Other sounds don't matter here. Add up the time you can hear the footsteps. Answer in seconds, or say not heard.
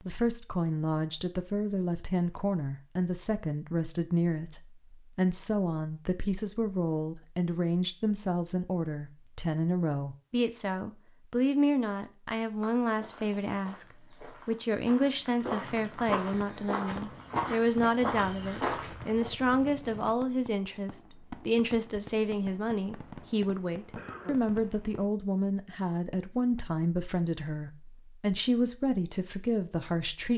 7 s.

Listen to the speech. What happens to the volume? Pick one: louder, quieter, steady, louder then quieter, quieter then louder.
steady.